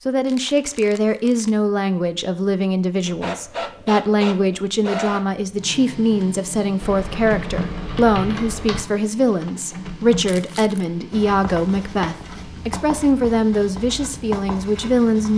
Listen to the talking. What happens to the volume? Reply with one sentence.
The loudness of the talking stays about the same.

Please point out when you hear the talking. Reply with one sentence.
You can hear the talking from 0.1 to 15.3 s.